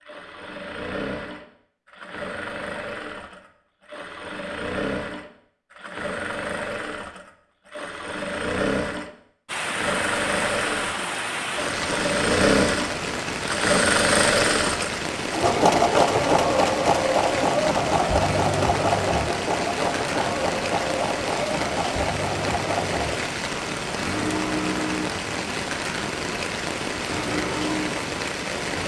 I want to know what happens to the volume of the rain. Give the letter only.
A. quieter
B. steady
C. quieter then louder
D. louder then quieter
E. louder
B.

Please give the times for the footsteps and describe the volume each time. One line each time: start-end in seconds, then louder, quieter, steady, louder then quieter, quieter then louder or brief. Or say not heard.
not heard.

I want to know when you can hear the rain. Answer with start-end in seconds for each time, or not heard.
9.4-28.8.